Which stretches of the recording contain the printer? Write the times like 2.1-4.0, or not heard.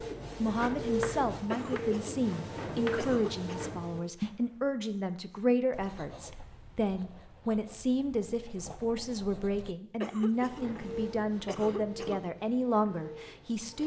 0.0-4.1, 10.1-13.8.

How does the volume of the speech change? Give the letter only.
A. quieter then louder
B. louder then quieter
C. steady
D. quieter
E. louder
C.